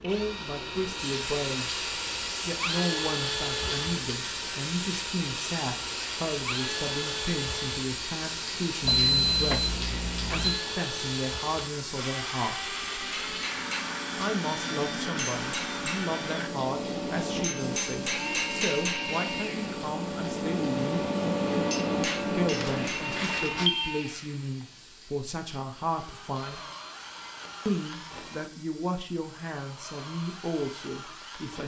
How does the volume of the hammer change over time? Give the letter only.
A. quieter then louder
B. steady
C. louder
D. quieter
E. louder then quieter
C.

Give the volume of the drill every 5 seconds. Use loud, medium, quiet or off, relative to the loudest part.
loud, loud, loud, loud, loud, medium, medium.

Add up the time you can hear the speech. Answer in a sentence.
The speech can be heard for 27 seconds in total.